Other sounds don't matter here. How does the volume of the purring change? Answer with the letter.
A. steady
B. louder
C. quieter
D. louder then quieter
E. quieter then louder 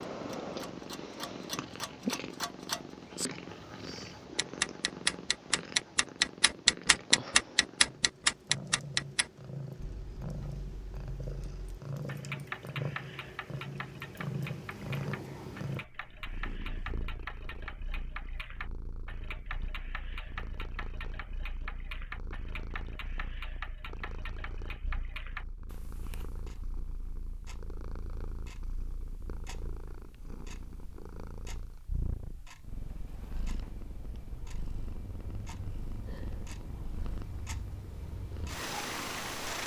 E.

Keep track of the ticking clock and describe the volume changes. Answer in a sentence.
The loudness of the ticking clock goes down.